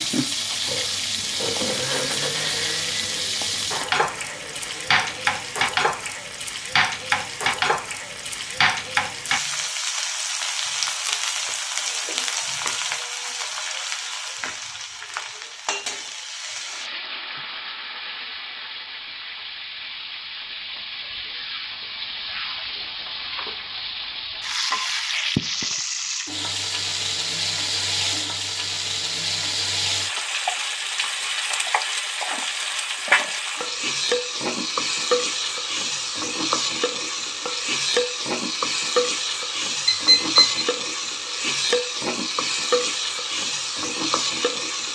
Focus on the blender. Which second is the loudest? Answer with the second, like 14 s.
2 s.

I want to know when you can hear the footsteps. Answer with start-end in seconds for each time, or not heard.
not heard.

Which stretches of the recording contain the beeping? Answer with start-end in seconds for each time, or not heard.
39.9-40.6.